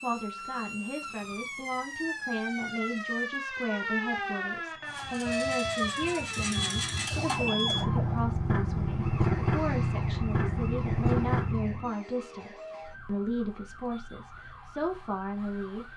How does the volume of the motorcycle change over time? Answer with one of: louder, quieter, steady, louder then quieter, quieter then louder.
louder.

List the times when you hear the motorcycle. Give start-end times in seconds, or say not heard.
4.7-11.9.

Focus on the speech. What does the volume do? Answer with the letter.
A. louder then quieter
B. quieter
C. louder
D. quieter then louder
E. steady
E.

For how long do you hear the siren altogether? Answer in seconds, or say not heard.
16 s.